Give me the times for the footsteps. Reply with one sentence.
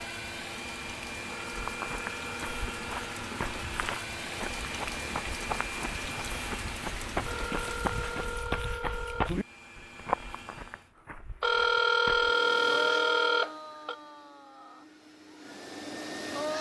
You can hear the footsteps from 1.6 to 12.3 s.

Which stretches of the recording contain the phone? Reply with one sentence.
You can hear the phone from 1.3 to 3.1 s, from 7.2 to 9.3 s and from 11.4 to 13.9 s.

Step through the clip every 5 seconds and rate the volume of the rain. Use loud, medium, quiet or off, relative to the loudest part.
loud, loud, off, off.